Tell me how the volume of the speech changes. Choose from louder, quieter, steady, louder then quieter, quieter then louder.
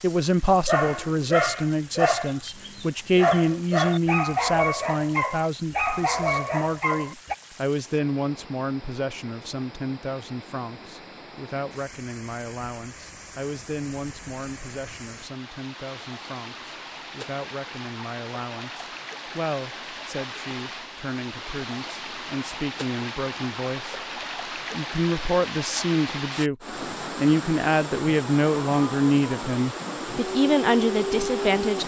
quieter then louder.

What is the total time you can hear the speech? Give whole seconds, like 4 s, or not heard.
32 s.